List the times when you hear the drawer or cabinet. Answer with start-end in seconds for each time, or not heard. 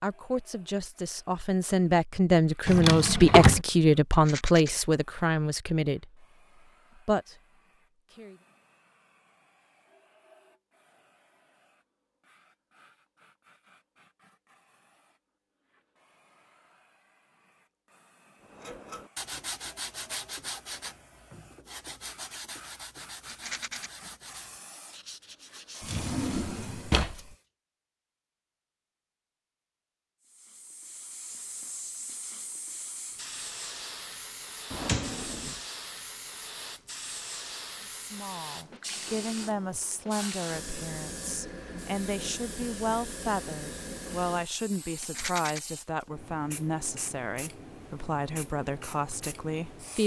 2.6-3.6, 25.9-27.1, 34.7-35.6.